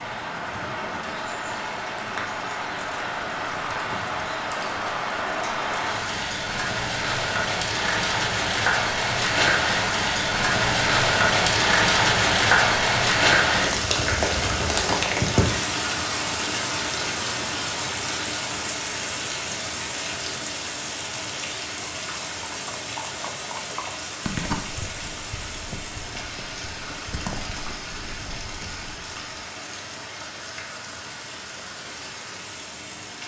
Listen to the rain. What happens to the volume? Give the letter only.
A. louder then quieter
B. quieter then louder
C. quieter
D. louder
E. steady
A.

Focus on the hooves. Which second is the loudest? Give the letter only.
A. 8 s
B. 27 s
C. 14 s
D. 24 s
D.